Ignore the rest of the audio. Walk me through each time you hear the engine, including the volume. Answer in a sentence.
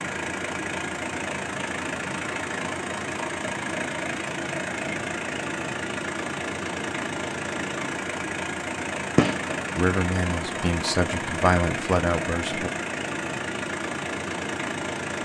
The engine can be heard from 0.0 to 15.2 s, at a steady volume.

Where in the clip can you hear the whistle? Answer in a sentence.
The whistle can't be heard in this clip.